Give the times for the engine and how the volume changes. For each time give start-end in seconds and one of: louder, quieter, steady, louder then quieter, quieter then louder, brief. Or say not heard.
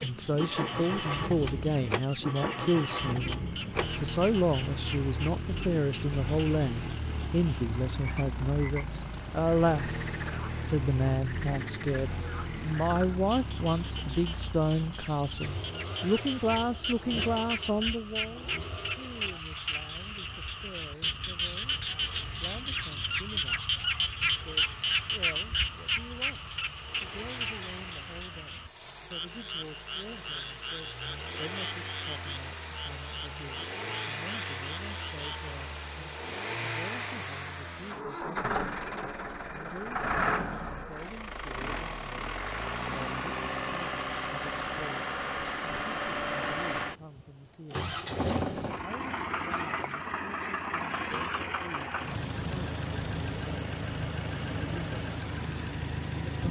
0.0-56.4 quieter then louder.